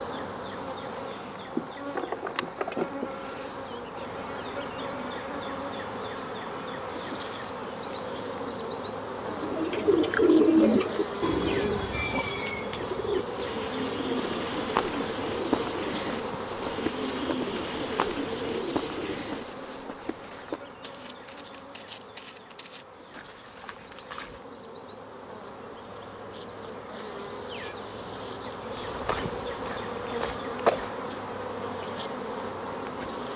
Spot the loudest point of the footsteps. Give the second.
31 s.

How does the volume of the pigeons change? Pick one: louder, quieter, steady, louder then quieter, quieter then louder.
quieter.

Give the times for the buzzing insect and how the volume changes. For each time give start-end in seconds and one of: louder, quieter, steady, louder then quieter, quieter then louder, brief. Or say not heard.
0.0-33.3 quieter then louder.